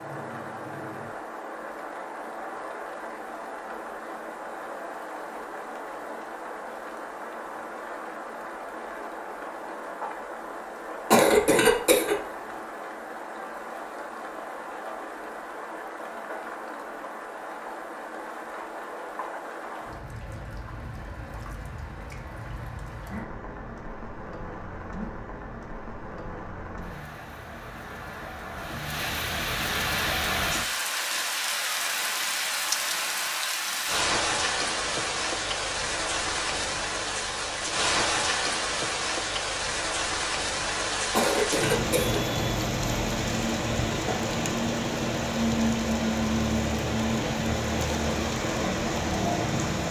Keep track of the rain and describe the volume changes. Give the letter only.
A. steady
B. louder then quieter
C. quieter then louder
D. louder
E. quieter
D.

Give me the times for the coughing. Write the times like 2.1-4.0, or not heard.
11.1-12.2, 41.1-42.2.